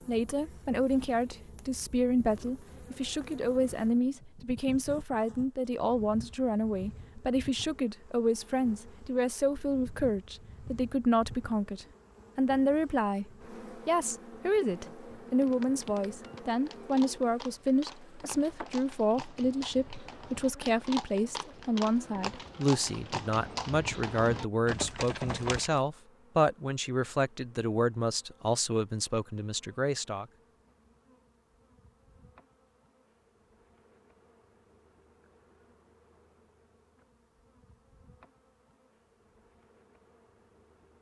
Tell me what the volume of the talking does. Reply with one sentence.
The volume of the talking stays about the same.